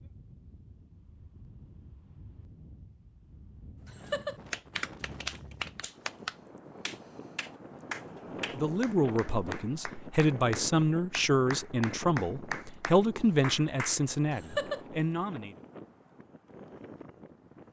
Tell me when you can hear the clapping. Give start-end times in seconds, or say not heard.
3.9-14.8.